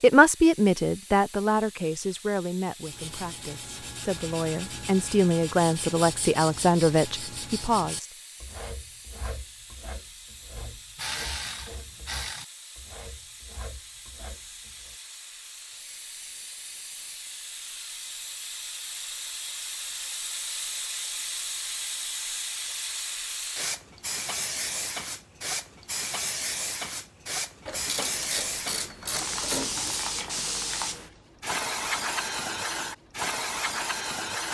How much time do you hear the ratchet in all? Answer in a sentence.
You can hear the ratchet for 4 seconds altogether.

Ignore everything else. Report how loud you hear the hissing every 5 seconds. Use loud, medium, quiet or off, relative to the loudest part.
quiet, quiet, quiet, medium, loud, loud, loud.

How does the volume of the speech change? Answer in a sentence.
The volume of the speech goes down, then up.